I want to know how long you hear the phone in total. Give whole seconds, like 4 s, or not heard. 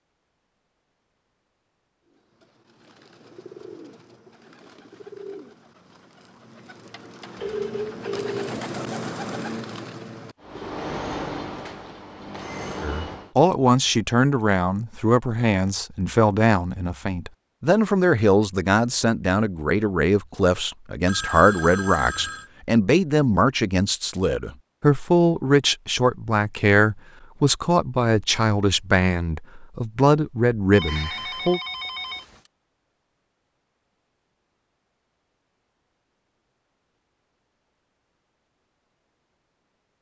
4 s.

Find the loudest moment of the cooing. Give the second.
9 s.